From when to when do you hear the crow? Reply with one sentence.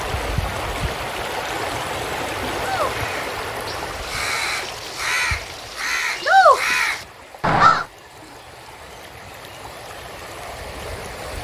You can hear the crow from 2.6 to 7.8 s.